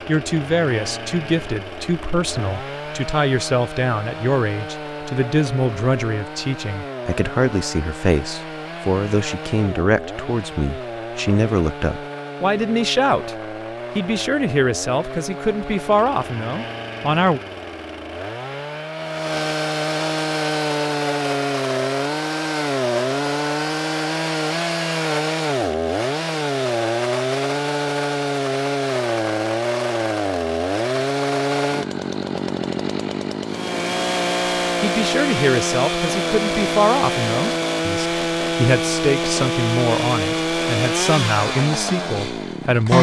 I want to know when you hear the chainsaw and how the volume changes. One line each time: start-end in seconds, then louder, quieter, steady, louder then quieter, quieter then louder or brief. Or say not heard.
0.0-42.9 louder.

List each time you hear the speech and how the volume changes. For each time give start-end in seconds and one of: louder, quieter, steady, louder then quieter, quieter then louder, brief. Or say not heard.
0.1-17.4 steady
34.8-42.9 steady.